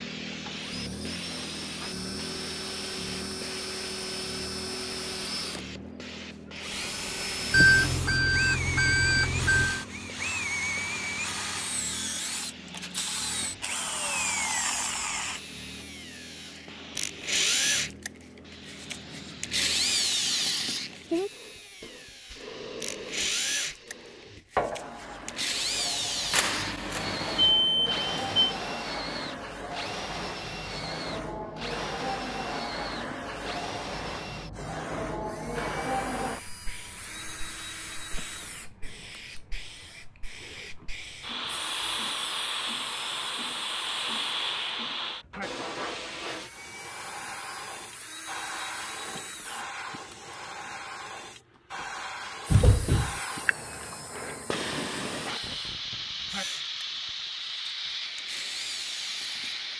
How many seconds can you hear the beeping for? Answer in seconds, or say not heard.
5 s.